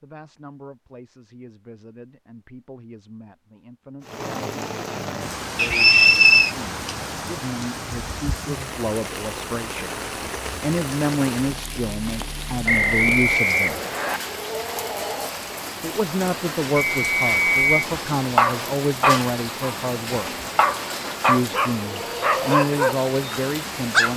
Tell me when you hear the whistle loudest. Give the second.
6 s.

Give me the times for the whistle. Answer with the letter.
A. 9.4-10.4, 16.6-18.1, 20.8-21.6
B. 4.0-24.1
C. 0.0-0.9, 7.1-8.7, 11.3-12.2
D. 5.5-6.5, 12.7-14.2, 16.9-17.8
D.